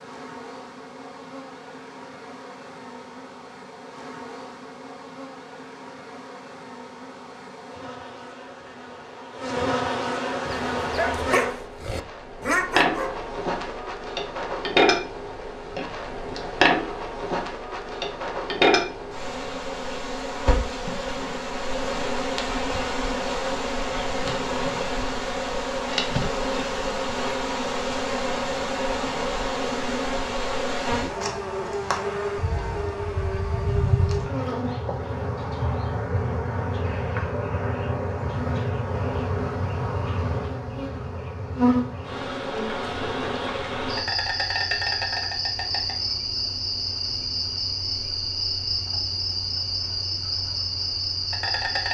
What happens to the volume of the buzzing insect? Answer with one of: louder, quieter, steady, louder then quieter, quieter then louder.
louder.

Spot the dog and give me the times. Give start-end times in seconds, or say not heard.
10.4-13.2.